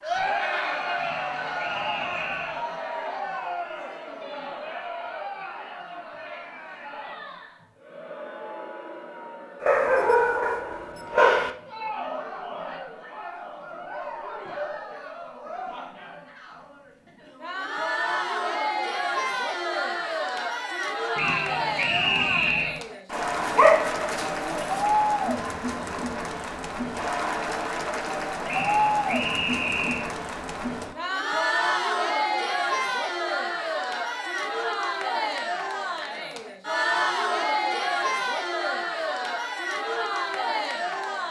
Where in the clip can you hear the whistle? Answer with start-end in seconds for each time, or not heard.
0.9-2.6, 21.1-22.8, 28.4-30.1.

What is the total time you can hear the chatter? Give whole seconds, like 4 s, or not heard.
41 s.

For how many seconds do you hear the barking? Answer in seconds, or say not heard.
4 s.